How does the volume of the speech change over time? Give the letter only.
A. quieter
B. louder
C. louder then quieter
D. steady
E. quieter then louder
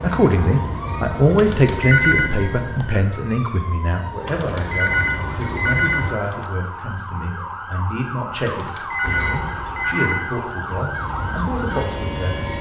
A.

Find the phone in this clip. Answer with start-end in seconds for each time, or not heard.
1.4-2.3, 4.2-6.5, 8.4-10.4.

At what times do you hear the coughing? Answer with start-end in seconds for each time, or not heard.
not heard.